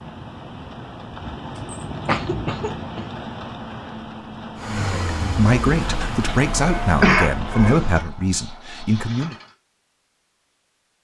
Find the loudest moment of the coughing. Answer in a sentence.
The loudest moment of the coughing is at 7 seconds.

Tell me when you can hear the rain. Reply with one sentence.
The rain can be heard from 0.0 to 8.0 s.